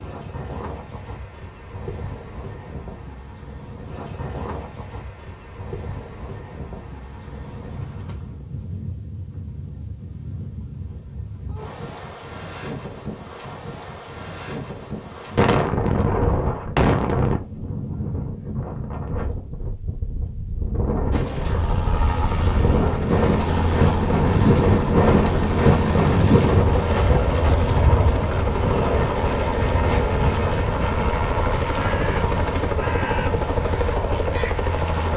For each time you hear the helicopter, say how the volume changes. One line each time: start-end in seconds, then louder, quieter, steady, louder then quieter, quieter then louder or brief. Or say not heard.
21.1-35.1 steady.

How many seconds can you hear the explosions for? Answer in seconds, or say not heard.
2 s.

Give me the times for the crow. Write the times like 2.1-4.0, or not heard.
31.8-35.1.